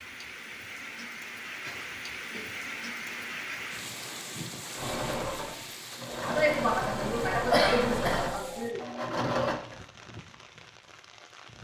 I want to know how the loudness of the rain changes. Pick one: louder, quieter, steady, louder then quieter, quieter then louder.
quieter.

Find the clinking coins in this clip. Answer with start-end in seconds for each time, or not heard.
not heard.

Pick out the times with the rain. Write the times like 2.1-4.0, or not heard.
0.0-11.5.